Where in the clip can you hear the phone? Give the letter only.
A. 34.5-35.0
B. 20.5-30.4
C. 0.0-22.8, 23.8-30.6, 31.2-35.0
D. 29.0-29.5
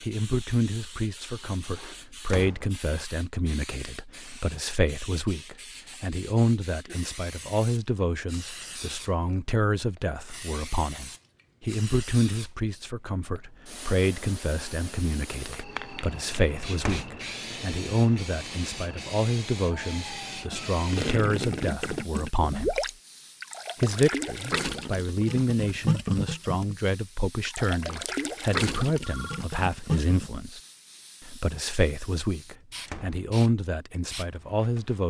D.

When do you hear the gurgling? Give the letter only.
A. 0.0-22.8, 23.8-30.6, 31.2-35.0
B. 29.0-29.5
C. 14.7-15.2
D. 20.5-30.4
D.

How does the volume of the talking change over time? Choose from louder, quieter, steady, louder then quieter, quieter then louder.
steady.